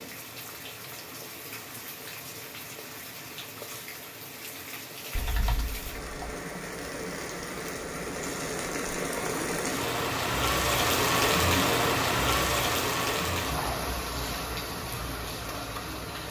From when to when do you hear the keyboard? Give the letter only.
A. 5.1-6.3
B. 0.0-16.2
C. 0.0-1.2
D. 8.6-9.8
A.